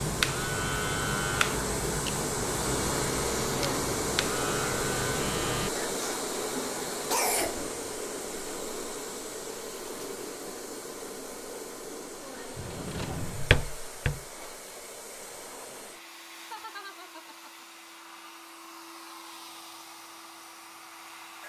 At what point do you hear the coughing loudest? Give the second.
7 s.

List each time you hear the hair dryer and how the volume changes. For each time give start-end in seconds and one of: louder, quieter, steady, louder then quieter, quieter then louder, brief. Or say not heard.
0.0-21.4 quieter.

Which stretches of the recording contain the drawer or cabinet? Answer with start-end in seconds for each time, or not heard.
12.6-14.2.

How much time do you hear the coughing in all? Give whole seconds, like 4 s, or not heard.
2 s.